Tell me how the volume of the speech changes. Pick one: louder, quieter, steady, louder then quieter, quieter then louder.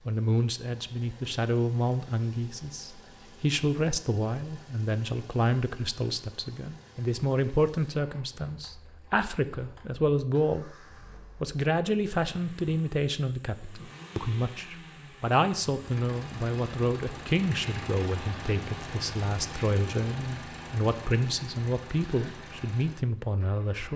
steady.